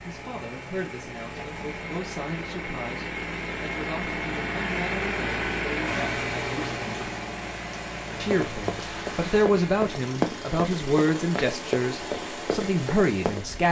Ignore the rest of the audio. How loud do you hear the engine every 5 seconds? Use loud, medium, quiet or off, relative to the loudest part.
loud, loud, medium.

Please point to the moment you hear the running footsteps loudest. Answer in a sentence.
The loudest moment of the running footsteps is at 10 seconds.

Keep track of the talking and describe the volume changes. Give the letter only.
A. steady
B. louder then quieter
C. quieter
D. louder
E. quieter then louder
D.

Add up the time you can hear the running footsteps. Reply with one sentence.
The running footsteps can be heard for 5 seconds in total.